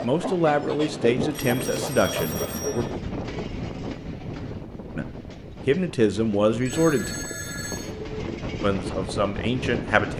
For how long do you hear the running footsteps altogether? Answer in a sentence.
You can't hear the running footsteps here.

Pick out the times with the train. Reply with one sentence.
You can hear the train from 0.0 to 10.1 s.